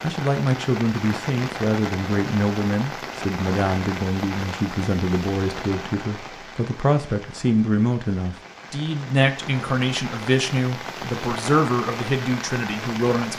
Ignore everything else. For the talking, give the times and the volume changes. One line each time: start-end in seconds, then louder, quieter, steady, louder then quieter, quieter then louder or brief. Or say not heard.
0.0-13.3 steady.